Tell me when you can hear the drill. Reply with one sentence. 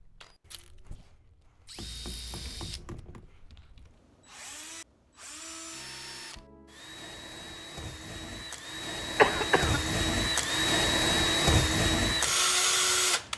The drill can be heard from 0.0 to 13.3 s.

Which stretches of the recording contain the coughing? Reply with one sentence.
The coughing can be heard from 9.2 to 9.9 s.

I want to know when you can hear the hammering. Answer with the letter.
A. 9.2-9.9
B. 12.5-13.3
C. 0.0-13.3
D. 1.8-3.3
D.